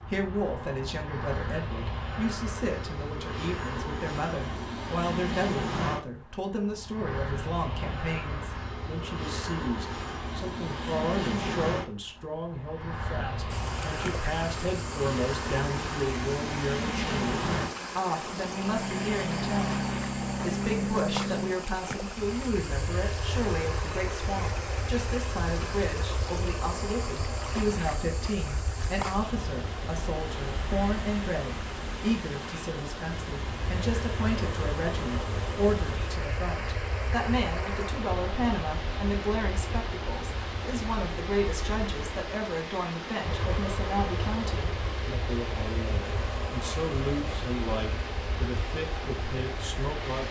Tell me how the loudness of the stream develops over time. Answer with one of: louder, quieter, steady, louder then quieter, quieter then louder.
steady.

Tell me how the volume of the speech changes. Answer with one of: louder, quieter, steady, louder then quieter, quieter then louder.
steady.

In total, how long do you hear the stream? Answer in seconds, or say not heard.
37 s.